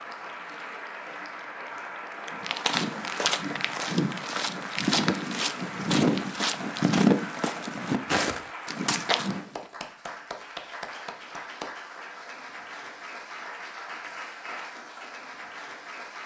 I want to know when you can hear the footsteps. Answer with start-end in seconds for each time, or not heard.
2.2-9.4.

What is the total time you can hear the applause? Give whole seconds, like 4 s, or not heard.
16 s.